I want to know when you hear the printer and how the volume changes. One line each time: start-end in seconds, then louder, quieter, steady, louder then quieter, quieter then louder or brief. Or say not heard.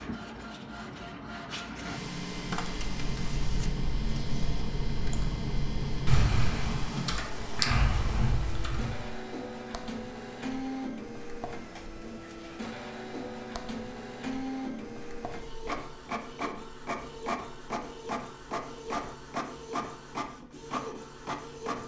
0.0-21.8 steady.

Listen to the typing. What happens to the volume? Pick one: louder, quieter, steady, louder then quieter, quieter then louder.
louder.